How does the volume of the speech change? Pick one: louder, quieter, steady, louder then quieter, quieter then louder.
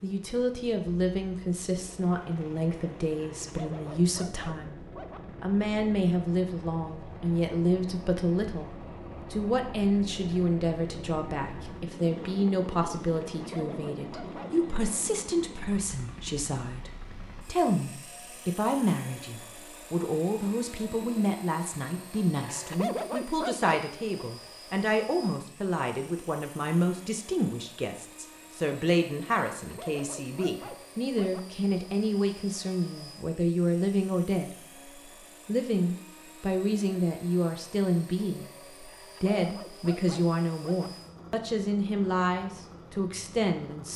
steady.